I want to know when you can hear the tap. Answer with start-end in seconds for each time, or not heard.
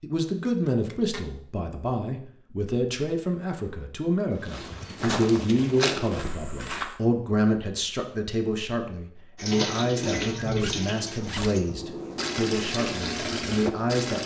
9.3-14.2.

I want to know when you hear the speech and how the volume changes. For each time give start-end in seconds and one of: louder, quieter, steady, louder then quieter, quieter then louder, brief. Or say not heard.
0.0-14.2 steady.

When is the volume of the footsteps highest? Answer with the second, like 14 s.
6 s.